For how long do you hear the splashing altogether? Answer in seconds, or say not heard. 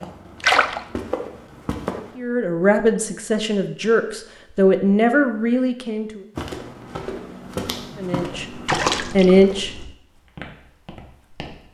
2 s.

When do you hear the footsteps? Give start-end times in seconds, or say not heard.
0.0-2.1, 6.3-11.6.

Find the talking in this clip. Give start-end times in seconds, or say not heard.
2.1-6.2, 8.0-9.7.